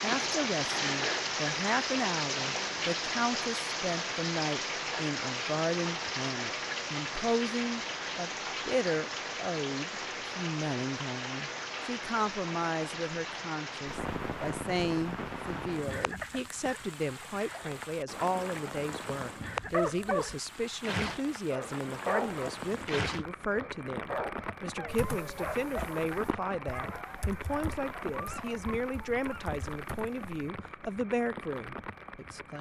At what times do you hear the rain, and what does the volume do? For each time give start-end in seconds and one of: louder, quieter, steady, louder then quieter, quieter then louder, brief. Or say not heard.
0.0-32.5 quieter.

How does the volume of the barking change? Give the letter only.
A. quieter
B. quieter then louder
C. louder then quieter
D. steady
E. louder
A.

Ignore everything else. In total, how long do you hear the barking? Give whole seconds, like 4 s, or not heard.
10 s.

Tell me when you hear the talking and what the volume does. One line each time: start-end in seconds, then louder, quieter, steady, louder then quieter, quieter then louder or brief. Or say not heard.
0.0-32.5 steady.